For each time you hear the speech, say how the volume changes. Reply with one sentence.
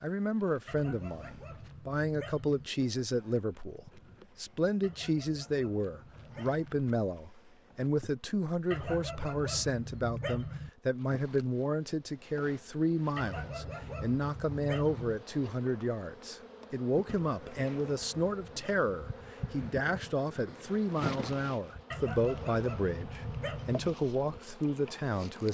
The speech can be heard from 0.0 to 25.5 s, at a steady volume.